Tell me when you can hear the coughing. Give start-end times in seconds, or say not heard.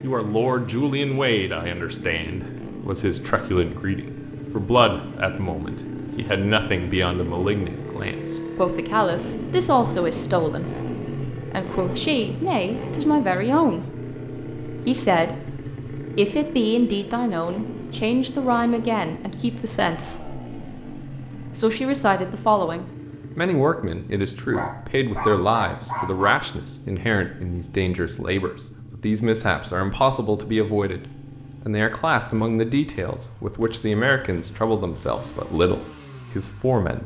not heard.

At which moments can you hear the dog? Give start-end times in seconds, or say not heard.
24.5-26.3.